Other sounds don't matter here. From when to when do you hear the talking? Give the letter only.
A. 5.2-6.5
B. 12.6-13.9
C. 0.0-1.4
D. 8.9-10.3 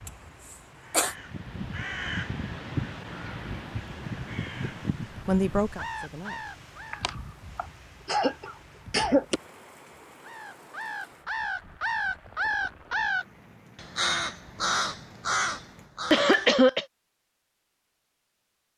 A.